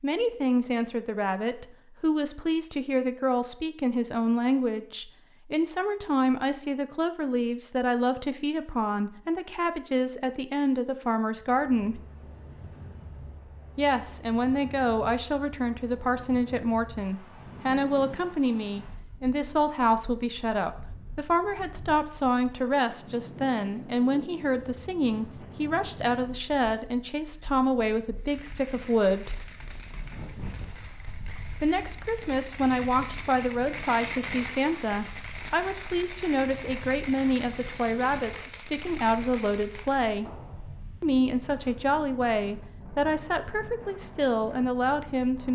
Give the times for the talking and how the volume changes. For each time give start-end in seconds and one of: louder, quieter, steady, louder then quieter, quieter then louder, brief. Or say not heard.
0.0-12.1 steady
13.8-29.4 steady
31.6-40.3 steady
41.0-45.5 steady.